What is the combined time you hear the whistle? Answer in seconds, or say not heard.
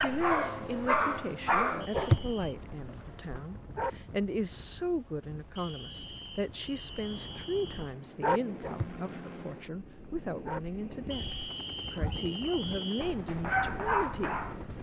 5 s.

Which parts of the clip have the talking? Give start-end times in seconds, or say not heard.
0.0-14.4.